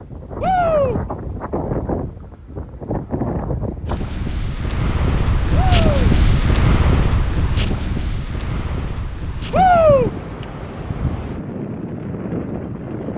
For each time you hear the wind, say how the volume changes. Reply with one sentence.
The wind can be heard from 0.0 to 13.1 s, getting louder then quieter.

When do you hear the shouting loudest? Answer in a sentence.
The loudest moment of the shouting is at 10 seconds.